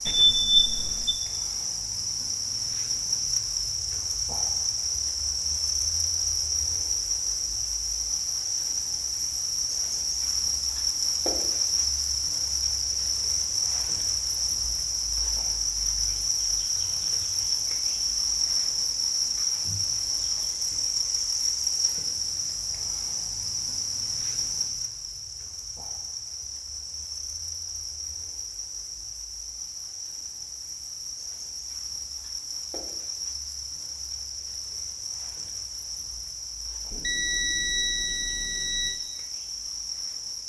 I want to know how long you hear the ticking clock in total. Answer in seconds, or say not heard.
not heard.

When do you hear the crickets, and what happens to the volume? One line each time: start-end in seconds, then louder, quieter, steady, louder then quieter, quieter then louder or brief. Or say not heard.
0.0-40.4 quieter.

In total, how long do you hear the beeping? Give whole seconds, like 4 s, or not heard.
3 s.